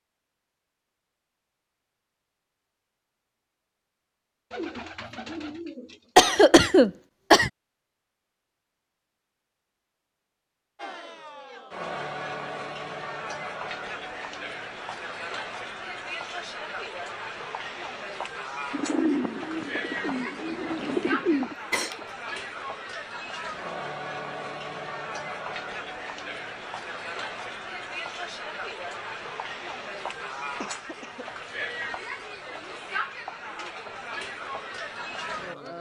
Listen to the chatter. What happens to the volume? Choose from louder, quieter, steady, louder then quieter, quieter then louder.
steady.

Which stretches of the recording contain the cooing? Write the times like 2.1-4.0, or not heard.
4.5-6.3, 18.7-21.6.